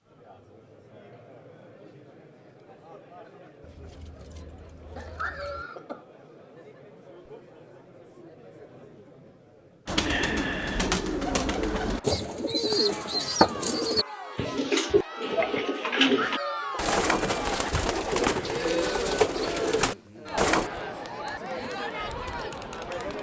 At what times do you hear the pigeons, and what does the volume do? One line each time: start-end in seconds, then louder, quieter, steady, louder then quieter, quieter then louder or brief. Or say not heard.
9.8-20.7 steady.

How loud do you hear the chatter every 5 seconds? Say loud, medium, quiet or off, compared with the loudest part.
quiet, quiet, medium, loud, loud.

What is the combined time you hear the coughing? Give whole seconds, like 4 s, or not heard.
2 s.